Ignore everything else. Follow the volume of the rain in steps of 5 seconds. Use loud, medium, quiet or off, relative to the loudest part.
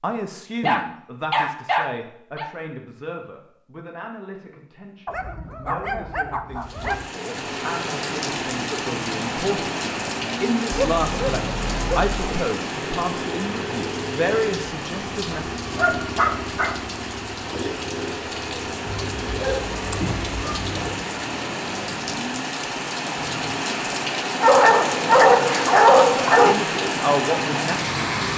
off, medium, medium, medium, loud, loud.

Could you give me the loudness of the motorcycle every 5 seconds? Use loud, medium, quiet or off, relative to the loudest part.
off, loud, loud, loud, loud, off.